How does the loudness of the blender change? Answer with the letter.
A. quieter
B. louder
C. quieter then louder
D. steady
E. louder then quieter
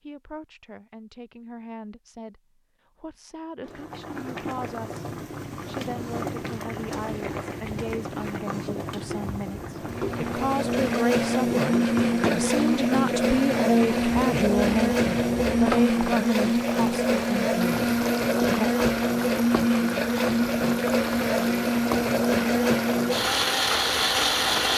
D.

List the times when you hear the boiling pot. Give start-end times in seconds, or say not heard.
3.6-24.7.